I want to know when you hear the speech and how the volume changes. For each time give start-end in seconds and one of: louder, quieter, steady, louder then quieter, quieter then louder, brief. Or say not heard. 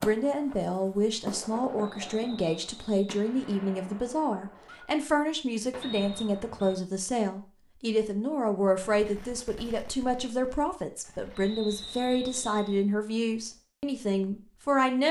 0.0-15.0 steady.